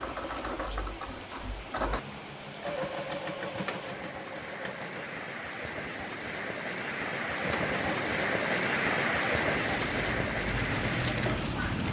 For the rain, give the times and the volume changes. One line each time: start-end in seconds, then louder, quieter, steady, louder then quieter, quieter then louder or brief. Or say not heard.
0.0-11.8 louder.